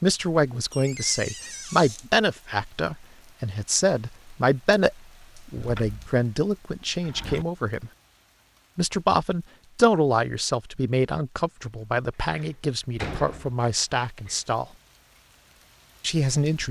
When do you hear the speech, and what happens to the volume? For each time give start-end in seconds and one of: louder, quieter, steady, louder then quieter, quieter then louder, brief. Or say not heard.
0.0-7.9 steady
8.8-14.7 quieter
16.0-16.6 brief.